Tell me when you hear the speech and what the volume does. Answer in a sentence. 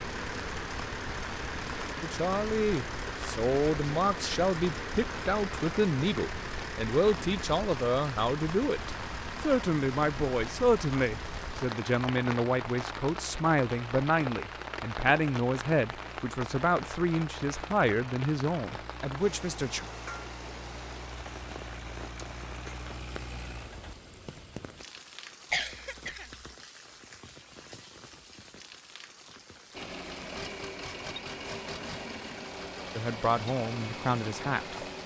You can hear the speech from 2.0 to 19.9 s, at a steady volume; and briefly from 33.0 to 35.0 s.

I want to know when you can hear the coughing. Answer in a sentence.
You can hear the coughing from 25.5 to 26.4 s.